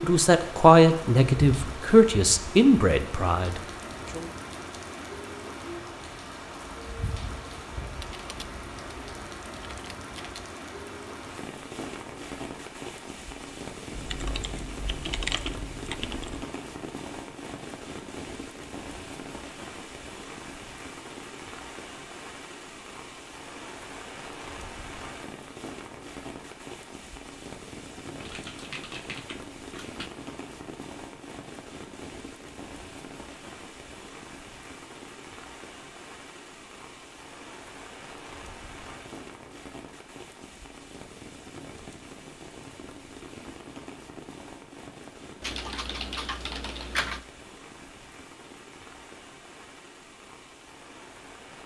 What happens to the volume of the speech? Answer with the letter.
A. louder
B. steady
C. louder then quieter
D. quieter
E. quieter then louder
D.